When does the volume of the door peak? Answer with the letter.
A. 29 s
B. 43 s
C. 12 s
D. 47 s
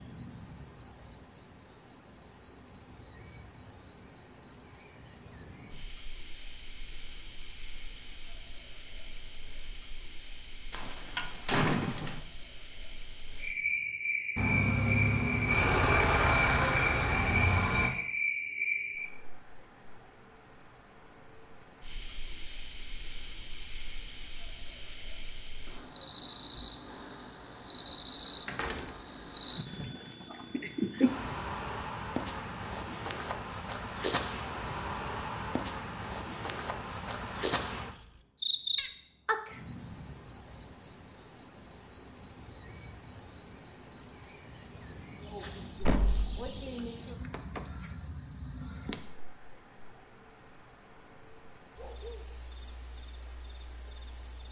C.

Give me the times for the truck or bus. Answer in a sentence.
You can hear the truck or bus from 14.3 to 17.9 s.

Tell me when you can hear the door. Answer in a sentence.
You can hear the door from 10.7 to 12.2 s, from 28.4 to 28.9 s and from 45.8 to 46.4 s.